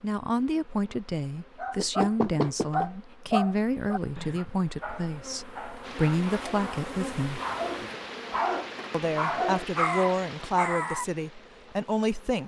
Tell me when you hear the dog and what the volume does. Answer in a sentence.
The dog can be heard from 1.6 to 11.1 s, getting quieter then louder.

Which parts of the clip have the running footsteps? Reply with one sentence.
The running footsteps can't be heard in this clip.